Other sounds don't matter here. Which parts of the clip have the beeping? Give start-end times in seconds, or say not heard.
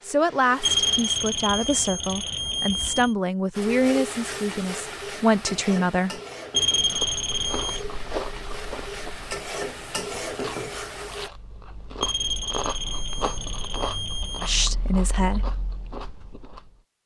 0.6-3.1, 6.5-7.8, 12.0-14.7.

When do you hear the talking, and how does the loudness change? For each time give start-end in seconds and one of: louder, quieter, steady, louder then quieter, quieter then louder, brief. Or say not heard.
0.0-6.2 steady
14.4-15.5 brief.